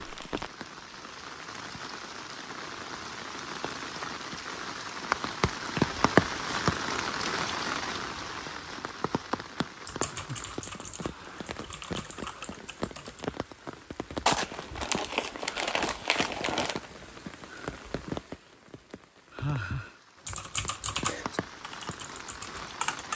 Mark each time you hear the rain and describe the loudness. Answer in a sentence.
You can hear the rain from 0.0 to 23.1 s, getting louder then quieter.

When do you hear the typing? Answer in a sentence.
The typing can be heard from 9.8 to 13.2 s and from 20.2 to 23.1 s.